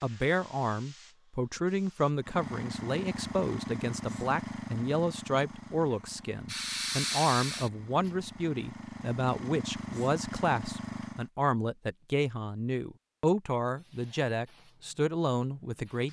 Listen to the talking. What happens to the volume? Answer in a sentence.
The loudness of the talking stays about the same.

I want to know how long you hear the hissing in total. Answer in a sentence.
The hissing can be heard for 6 seconds in total.